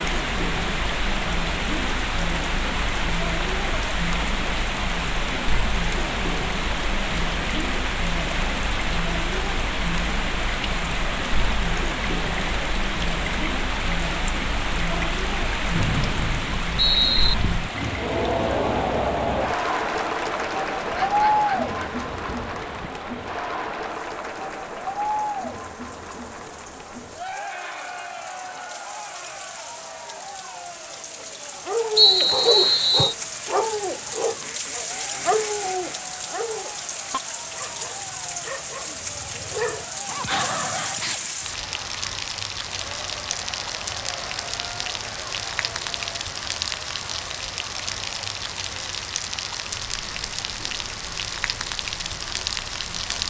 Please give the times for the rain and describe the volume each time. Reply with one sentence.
You can hear the rain from 0.0 to 53.2 s, getting quieter then louder.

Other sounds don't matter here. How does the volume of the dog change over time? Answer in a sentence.
The volume of the dog goes down, then up.